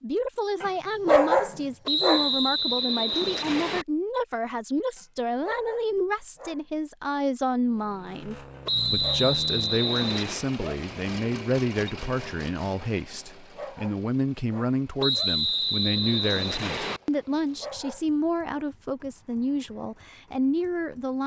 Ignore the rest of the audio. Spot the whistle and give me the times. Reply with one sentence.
You can hear the whistle from 1.9 to 3.9 s, from 8.7 to 10.4 s and from 15.0 to 17.0 s.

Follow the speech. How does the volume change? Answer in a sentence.
The loudness of the speech stays about the same.